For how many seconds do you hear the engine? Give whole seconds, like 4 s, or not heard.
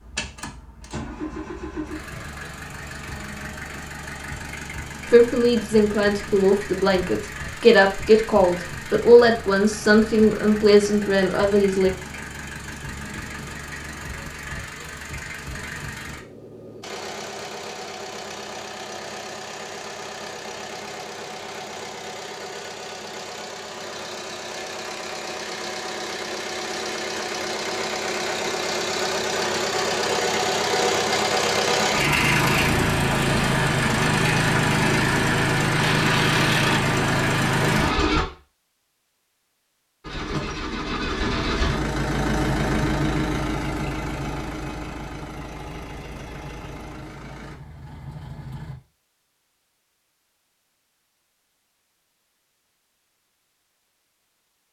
47 s.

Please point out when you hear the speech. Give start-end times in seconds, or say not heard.
5.1-11.9.